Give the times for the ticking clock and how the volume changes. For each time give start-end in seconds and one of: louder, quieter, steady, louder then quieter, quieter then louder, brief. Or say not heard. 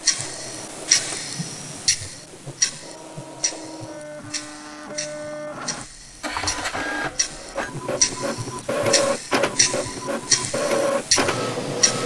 0.0-12.0 quieter then louder.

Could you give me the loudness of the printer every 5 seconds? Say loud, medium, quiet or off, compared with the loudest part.
quiet, loud, loud.